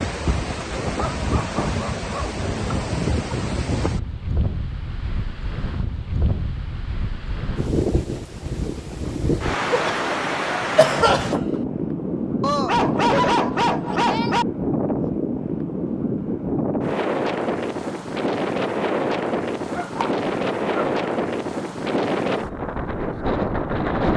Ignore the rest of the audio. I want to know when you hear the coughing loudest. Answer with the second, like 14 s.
11 s.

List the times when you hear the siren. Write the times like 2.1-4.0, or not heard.
not heard.